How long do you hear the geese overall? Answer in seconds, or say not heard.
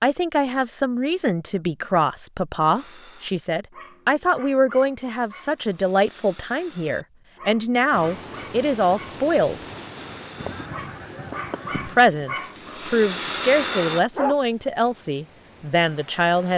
2 s.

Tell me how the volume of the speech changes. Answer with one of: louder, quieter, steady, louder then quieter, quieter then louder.
steady.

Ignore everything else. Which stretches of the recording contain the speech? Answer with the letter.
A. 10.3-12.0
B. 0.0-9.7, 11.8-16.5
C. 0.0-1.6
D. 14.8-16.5
B.